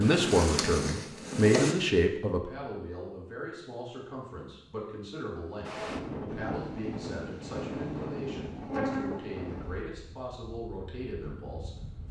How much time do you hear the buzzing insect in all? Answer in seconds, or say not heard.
5 s.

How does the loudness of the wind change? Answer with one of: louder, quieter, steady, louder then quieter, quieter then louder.
quieter.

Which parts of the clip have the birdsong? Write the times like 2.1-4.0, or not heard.
not heard.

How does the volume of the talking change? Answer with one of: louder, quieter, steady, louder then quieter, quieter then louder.
quieter.